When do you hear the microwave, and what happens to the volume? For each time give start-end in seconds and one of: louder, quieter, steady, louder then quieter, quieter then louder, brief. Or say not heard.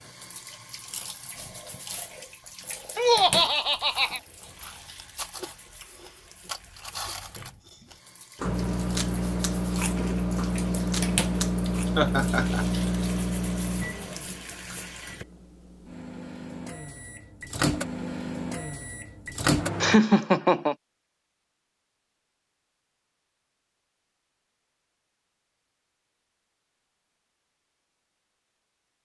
8.4-20.0 quieter then louder.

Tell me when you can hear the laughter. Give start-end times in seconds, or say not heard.
3.0-4.2, 11.9-12.7, 19.8-20.8.